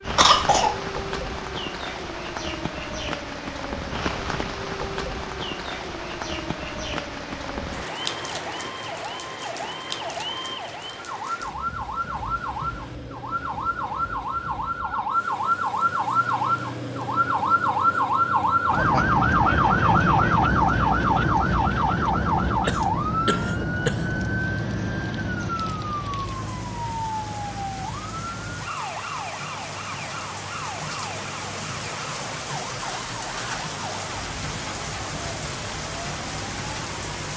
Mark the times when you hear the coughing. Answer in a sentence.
You can hear the coughing from 0.1 to 0.8 s and from 22.6 to 24.1 s.